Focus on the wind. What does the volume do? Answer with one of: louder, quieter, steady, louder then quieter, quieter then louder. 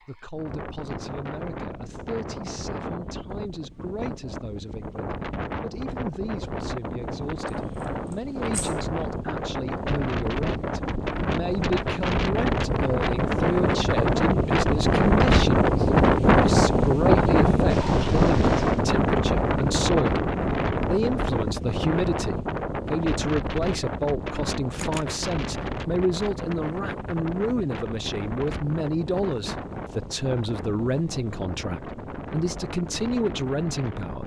louder then quieter.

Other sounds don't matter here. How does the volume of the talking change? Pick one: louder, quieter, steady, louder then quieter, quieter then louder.
louder.